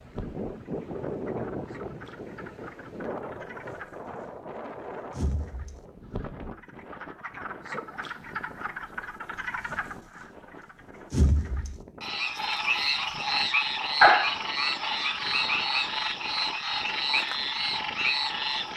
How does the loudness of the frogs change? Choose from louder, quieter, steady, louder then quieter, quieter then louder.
louder.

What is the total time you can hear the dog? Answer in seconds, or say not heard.
2 s.